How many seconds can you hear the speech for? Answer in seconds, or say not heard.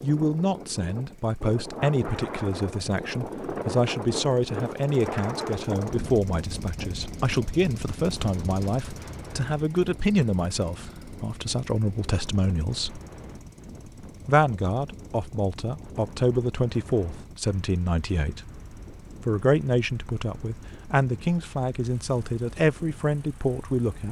22 s.